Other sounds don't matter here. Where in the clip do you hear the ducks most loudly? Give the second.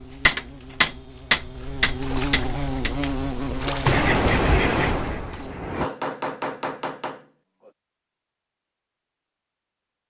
4 s.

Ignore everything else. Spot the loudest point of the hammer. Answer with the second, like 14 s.
1 s.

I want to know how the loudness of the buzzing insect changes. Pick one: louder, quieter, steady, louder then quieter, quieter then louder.
louder then quieter.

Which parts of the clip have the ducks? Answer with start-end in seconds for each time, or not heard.
3.9-5.9.